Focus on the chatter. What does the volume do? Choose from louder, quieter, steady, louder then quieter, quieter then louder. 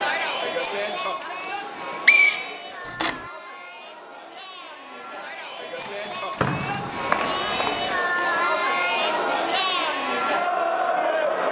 quieter then louder.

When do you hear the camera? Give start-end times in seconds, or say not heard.
2.9-3.3, 5.8-7.8.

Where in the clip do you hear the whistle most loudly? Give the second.
2 s.